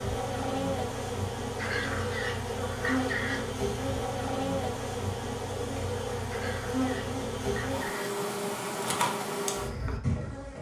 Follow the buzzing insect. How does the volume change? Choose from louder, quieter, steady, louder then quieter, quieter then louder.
steady.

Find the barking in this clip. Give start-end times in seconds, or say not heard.
1.6-3.5, 6.3-8.2.